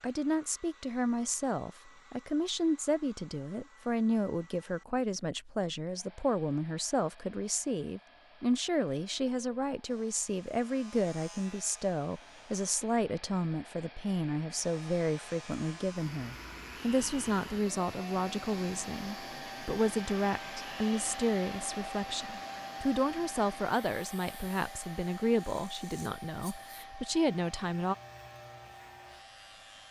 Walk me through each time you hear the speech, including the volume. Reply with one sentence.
You can hear the speech from 0.0 to 27.9 s, at a steady volume.